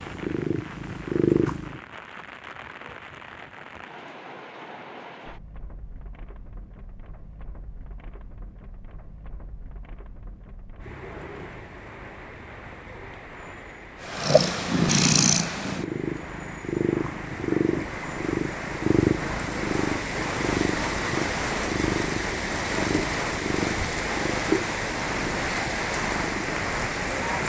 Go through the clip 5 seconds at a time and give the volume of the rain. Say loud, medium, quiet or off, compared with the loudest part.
quiet, quiet, quiet, medium, loud, loud.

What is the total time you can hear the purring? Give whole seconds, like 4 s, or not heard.
15 s.